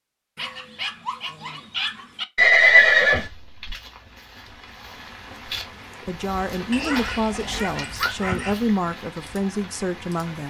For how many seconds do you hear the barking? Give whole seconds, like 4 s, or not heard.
4 s.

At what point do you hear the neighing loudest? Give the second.
3 s.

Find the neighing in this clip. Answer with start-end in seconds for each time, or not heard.
2.4-3.8, 6.7-8.2.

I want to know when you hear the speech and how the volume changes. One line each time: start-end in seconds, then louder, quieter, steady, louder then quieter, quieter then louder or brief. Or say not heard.
6.0-10.4 steady.